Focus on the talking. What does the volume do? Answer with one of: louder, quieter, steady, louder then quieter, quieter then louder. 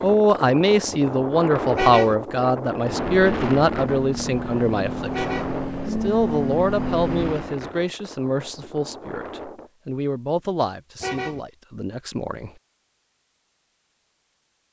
quieter.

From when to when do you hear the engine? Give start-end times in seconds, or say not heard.
2.8-7.5.